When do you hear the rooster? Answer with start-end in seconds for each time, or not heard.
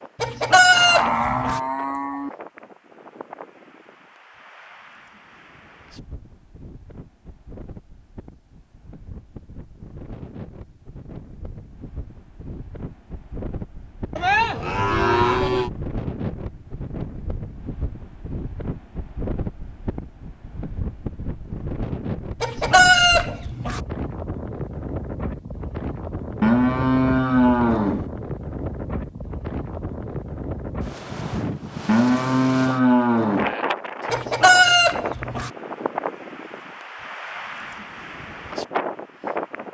0.2-1.6, 22.4-23.8, 34.1-35.5.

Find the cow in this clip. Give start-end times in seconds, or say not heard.
0.7-2.3, 14.2-15.7, 26.4-28.1, 31.9-33.5.